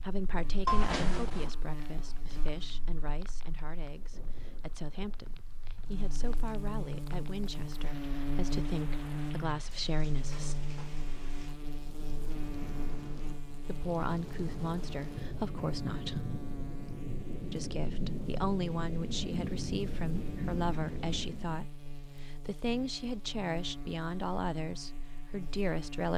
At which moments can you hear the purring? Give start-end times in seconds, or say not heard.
not heard.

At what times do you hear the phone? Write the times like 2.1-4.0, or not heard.
0.7-1.5.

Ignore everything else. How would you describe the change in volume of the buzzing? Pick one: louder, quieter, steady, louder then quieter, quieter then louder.
louder then quieter.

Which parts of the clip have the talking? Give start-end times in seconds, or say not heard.
0.0-10.6, 13.7-16.3, 17.5-26.1.